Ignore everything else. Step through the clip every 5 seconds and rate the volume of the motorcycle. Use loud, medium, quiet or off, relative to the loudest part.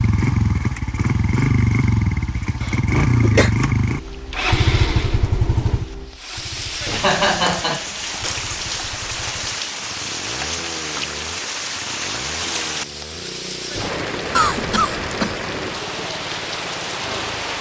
loud, medium, quiet, quiet.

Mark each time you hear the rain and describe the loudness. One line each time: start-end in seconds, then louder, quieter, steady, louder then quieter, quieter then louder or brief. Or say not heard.
0.0-17.5 louder.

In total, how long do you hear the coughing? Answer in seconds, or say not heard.
3 s.